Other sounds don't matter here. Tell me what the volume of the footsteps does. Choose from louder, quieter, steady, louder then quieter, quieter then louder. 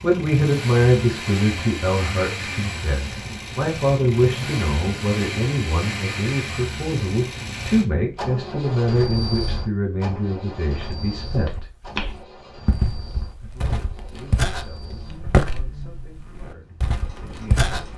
louder then quieter.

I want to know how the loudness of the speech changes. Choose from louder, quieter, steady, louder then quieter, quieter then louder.
quieter.